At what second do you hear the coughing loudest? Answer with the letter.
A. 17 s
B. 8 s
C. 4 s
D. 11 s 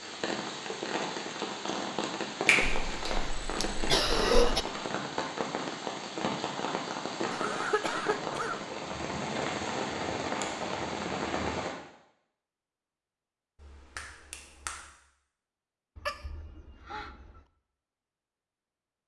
C.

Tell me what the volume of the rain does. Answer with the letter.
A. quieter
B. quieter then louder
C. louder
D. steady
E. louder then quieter
D.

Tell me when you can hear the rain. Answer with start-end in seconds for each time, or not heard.
0.0-11.8.